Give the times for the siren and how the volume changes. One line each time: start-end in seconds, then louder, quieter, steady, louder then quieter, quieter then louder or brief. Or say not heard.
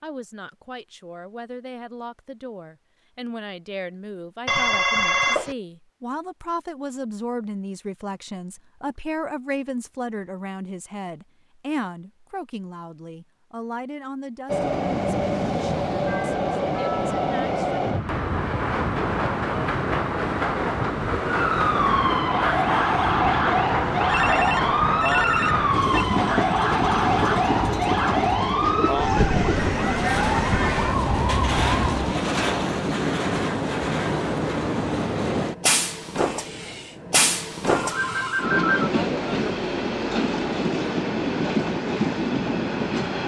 21.2-32.1 steady.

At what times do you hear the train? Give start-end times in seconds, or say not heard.
14.4-43.2.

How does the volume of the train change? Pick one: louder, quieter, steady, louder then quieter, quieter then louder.
steady.